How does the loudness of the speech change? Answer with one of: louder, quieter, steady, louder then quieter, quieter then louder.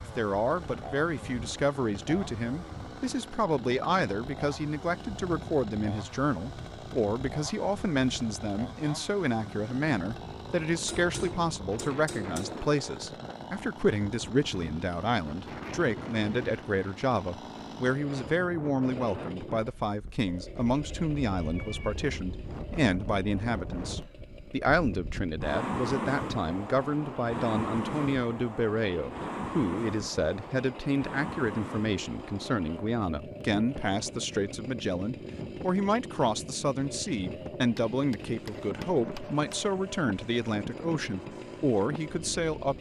steady.